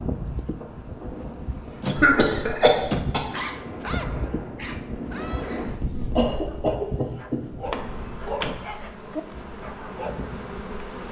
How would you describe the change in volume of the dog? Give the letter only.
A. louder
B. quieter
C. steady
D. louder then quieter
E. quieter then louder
E.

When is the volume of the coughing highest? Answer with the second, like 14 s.
2 s.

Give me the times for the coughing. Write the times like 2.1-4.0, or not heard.
1.9-3.2, 6.2-7.4.